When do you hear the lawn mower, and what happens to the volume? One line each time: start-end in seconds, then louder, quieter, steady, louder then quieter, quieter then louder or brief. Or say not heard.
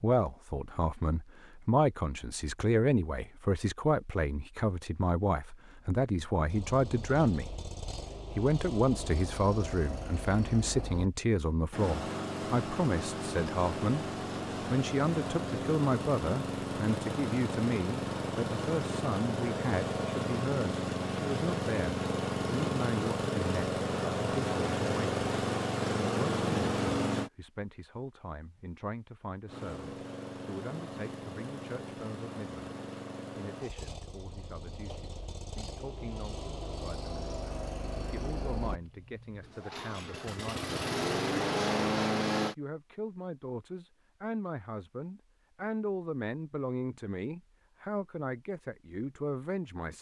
6.5-27.3 louder
29.4-42.5 louder.